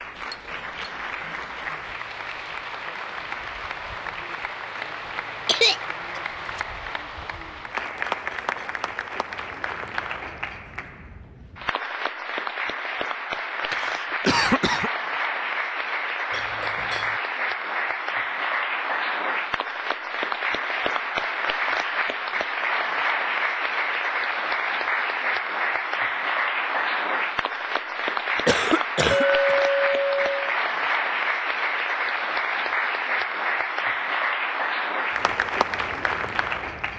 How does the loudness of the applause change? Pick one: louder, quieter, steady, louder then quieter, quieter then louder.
louder.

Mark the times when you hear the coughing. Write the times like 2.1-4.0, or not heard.
5.5-6.6, 13.7-14.9, 28.4-29.2.